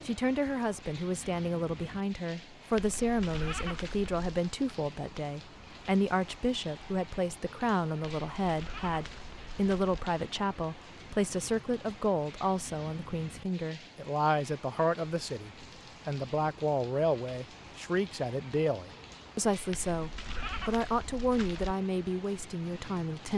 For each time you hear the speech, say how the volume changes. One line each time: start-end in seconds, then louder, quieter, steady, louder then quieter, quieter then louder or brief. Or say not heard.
0.1-23.3 steady.